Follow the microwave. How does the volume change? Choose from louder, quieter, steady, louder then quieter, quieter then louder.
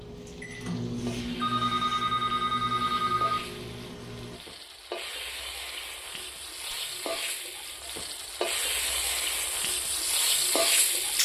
quieter.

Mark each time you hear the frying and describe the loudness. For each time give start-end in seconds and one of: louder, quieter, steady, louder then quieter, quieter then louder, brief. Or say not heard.
0.0-11.2 louder.